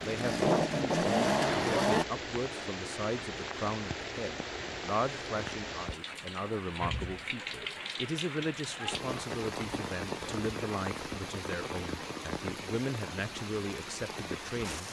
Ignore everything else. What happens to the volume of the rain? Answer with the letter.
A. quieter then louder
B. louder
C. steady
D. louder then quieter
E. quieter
C.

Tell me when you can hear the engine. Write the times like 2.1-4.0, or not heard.
0.0-2.0.